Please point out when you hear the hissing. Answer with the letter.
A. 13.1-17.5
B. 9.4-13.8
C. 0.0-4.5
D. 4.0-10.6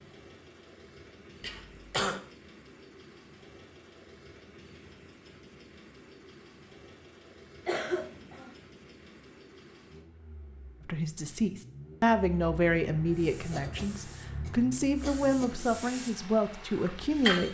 A.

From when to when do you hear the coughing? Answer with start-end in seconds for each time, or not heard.
1.4-2.2, 7.7-8.6, 13.5-15.6.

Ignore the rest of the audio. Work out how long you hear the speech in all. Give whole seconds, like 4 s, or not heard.
7 s.